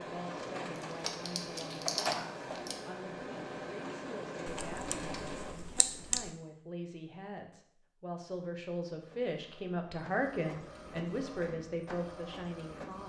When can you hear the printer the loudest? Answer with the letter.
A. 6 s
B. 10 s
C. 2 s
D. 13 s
C.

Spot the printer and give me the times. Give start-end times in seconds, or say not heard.
0.0-5.5, 9.0-13.0.